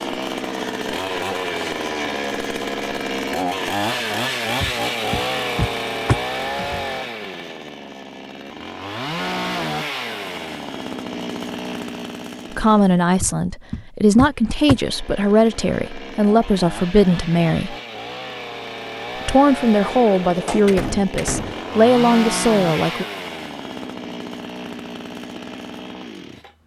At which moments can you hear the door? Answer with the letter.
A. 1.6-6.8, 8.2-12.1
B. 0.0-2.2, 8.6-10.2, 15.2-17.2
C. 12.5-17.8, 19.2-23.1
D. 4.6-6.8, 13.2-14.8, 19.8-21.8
D.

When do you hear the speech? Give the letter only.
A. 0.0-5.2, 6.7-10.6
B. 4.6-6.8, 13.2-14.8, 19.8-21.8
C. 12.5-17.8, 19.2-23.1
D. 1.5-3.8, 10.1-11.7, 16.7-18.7
C.